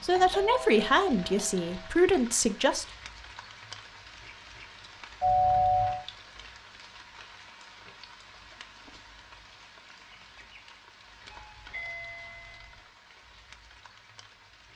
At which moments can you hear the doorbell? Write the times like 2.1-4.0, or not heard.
0.1-1.9, 5.2-6.0, 11.3-12.8.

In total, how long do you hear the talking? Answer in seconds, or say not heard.
3 s.